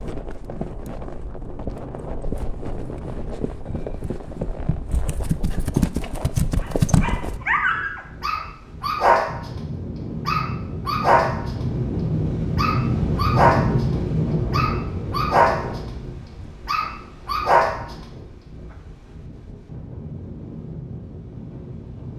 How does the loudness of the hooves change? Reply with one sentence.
The volume of the hooves goes up.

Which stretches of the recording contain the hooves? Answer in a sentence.
You can hear the hooves from 0.0 to 7.4 s.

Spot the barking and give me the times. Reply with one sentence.
You can hear the barking from 6.6 to 9.6 s, from 10.2 to 11.7 s and from 12.6 to 18.1 s.